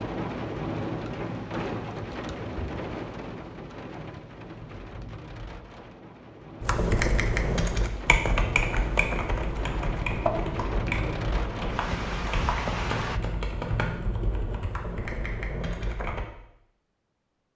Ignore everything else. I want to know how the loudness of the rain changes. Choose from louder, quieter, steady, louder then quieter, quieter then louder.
quieter then louder.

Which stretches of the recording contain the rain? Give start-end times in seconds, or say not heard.
0.0-13.2.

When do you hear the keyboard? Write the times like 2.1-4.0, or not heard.
6.6-16.2.